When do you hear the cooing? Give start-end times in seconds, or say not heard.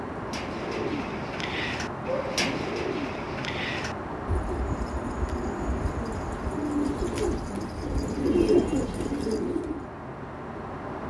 0.2-9.8.